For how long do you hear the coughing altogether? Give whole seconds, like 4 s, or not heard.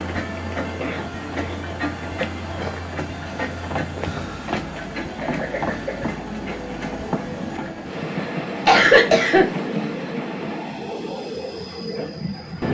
3 s.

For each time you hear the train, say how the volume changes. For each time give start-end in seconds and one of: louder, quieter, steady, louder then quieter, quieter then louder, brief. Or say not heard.
0.0-12.6 steady.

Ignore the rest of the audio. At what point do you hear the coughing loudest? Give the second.
9 s.